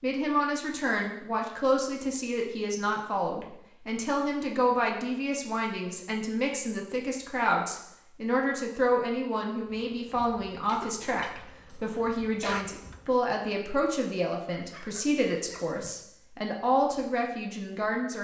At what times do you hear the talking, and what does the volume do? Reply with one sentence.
You can hear the talking from 0.0 to 18.1 s, at a steady volume.